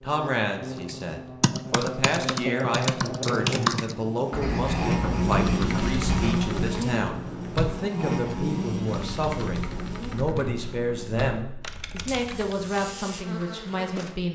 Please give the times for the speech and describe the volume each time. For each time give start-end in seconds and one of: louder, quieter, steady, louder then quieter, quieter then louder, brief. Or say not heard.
0.0-14.3 steady.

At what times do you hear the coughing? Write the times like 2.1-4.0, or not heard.
not heard.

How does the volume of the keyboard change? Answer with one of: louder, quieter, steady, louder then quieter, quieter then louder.
quieter.